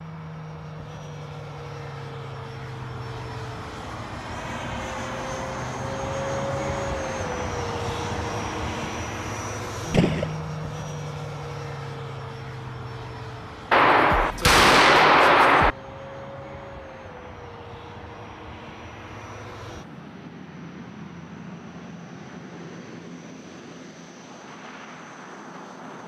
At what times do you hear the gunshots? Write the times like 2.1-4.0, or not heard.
9.9-10.3, 13.7-15.8.